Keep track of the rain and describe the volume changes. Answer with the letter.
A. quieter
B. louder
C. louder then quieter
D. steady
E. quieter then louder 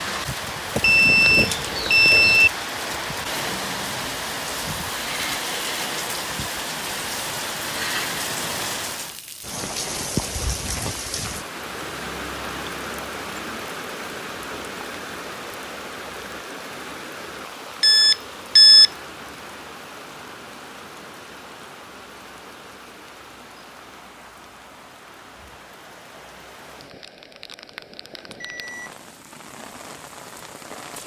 A.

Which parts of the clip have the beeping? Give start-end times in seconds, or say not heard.
0.8-2.5, 17.8-18.9, 28.3-28.9.